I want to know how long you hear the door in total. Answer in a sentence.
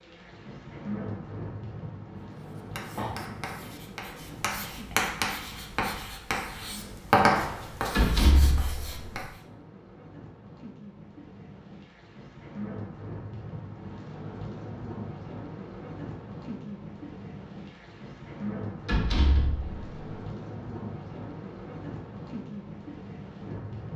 You can hear the door for 2 seconds altogether.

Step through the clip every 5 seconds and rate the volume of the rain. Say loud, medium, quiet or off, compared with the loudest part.
loud, medium, loud, loud, loud.